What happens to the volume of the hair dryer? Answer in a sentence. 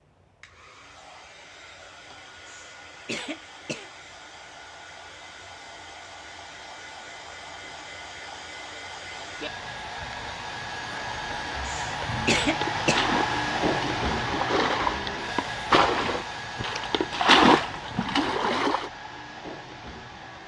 The volume of the hair dryer goes up, then down.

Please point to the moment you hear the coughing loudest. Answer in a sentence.
The volume of the coughing peaks at 12 seconds.